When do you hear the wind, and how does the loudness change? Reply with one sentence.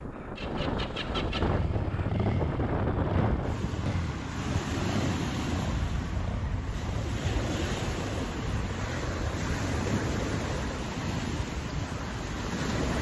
The wind can be heard from 0.0 to 12.9 s, at a steady volume.